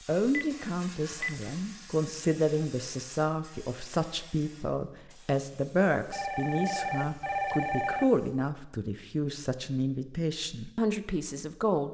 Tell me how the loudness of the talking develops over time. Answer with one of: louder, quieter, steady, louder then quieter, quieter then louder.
steady.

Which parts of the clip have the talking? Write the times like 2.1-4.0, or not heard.
0.1-11.8.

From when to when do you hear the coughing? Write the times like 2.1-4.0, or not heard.
not heard.